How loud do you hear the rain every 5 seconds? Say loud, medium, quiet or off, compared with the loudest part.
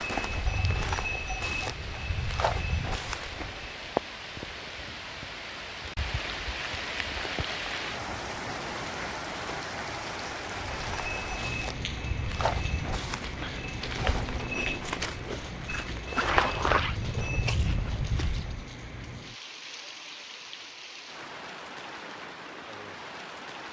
loud, loud, loud, medium, medium.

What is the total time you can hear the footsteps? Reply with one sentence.
You can hear the footsteps for 12 seconds altogether.